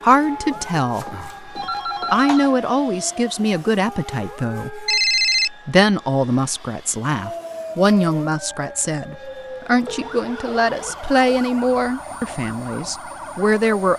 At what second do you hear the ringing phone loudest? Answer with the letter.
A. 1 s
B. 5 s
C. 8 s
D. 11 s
B.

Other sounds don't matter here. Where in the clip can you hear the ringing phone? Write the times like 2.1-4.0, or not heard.
0.1-2.5, 4.8-5.5, 9.8-11.4.